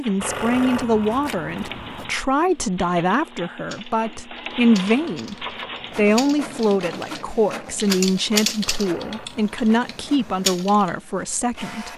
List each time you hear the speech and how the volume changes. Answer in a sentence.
You can hear the speech from 0.0 to 11.9 s, at a steady volume.